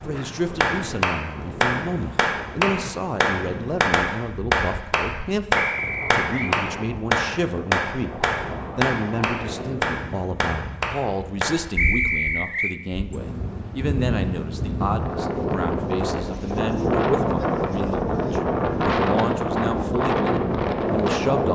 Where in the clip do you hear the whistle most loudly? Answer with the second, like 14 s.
12 s.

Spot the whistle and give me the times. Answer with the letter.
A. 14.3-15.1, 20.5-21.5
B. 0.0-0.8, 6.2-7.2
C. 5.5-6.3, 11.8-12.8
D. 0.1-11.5
C.